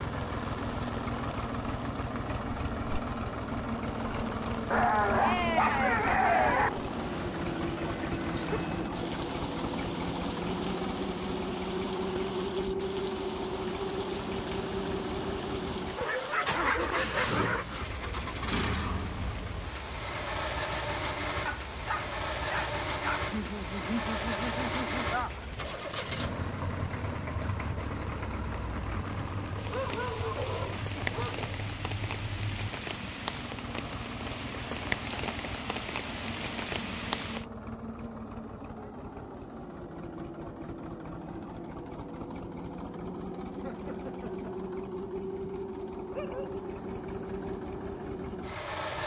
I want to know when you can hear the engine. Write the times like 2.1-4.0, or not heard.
0.0-49.0.